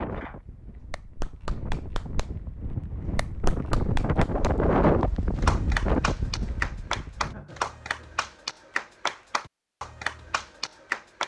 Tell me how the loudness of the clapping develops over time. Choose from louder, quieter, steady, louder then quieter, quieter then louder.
louder.